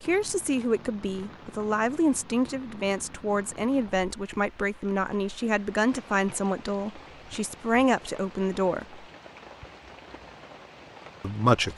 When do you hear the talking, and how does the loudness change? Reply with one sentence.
You can hear the talking from 0.0 to 9.1 s, at a steady volume; and briefly from 11.2 to 11.7 s.